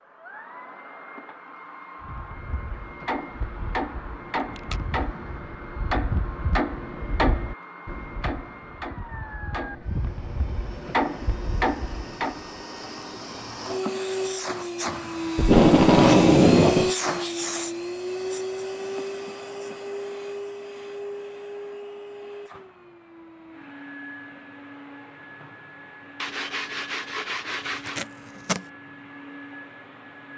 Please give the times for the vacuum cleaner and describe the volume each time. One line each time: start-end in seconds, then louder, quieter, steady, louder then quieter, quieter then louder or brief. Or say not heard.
0.0-30.3 louder then quieter.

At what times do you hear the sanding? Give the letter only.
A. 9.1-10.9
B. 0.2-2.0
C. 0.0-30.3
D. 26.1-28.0
D.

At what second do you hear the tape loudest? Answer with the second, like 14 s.
16 s.